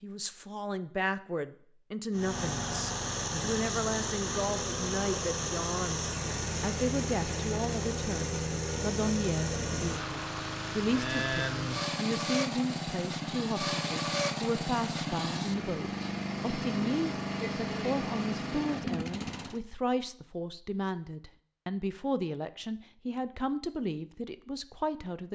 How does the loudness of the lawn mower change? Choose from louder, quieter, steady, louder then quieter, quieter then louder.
steady.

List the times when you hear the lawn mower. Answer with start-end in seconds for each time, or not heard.
2.1-19.6.